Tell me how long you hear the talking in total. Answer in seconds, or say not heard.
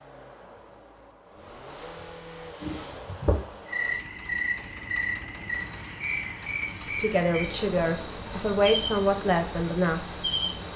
3 s.